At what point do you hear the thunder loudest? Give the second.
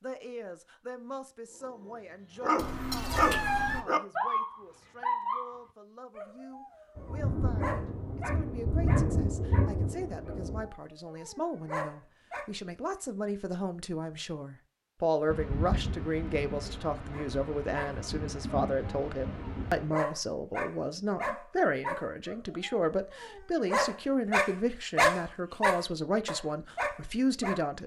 9 s.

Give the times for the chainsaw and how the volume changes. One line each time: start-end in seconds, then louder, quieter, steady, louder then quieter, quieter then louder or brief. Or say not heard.
not heard.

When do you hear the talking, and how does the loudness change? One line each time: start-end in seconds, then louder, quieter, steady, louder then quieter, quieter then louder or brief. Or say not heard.
0.0-27.8 louder.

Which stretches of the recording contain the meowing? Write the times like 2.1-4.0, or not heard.
2.5-3.9.